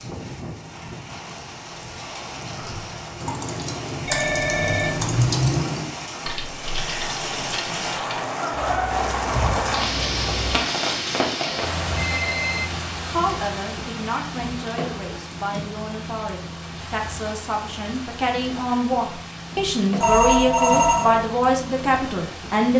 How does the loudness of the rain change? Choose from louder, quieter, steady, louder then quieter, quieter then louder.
louder then quieter.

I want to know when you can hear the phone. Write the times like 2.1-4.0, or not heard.
4.0-5.1, 11.4-12.7, 20.0-21.2.